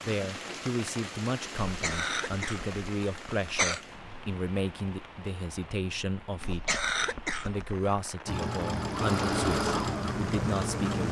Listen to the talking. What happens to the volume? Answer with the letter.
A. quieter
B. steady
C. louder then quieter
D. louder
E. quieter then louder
B.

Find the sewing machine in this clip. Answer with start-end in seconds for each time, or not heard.
8.2-11.0.